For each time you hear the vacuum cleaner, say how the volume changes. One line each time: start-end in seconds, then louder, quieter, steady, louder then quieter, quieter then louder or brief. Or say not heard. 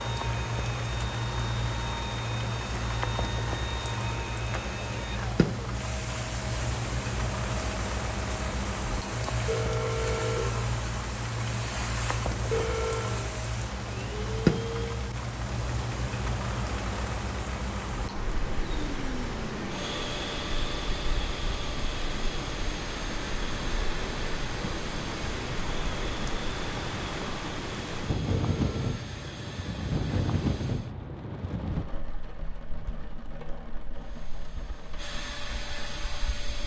0.0-15.1 steady
18.6-30.9 quieter
33.9-36.6 brief.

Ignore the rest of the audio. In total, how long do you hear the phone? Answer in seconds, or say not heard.
2 s.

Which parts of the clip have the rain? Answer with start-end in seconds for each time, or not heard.
0.0-36.6.